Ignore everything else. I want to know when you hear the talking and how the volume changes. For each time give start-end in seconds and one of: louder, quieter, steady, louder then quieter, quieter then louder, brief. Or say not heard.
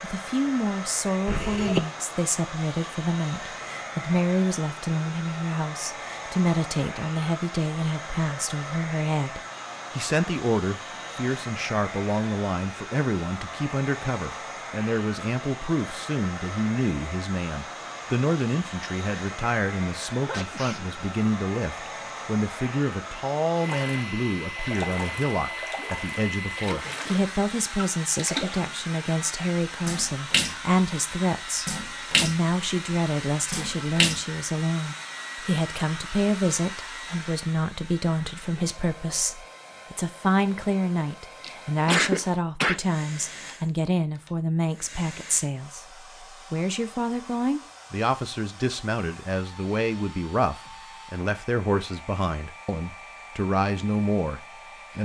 0.0-55.0 steady.